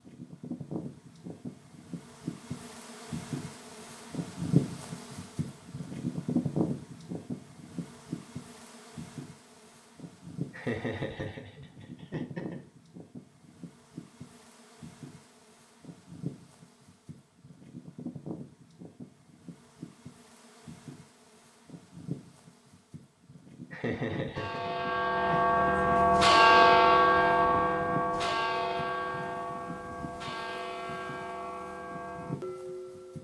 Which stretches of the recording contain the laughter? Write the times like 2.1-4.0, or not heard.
10.5-12.6, 23.7-25.6.